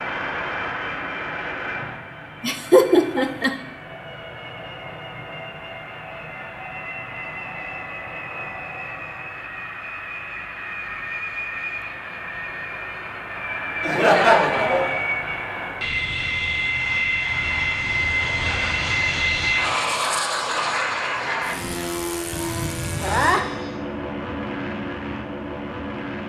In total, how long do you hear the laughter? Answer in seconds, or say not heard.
3 s.